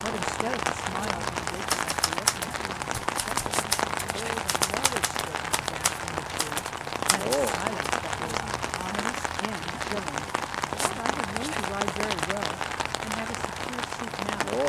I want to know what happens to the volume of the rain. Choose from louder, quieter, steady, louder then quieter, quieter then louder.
steady.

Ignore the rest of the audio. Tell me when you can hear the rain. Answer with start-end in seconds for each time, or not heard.
0.0-14.6.